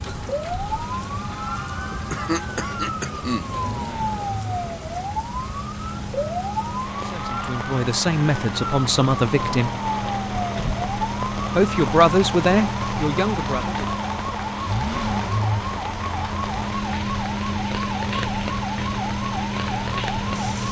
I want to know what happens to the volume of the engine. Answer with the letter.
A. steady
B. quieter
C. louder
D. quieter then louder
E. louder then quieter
C.